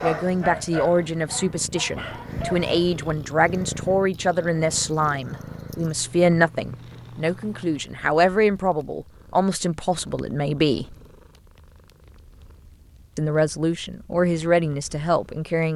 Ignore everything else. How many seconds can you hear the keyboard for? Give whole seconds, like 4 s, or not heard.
not heard.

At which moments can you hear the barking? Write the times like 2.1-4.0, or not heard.
0.0-2.9.